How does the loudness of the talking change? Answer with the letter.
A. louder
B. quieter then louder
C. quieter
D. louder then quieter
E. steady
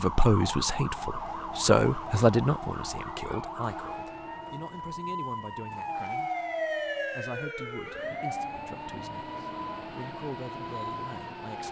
C.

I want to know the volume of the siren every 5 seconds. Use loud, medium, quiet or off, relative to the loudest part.
loud, loud, medium.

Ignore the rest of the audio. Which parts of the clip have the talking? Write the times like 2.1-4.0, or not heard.
0.0-6.3, 7.1-11.6.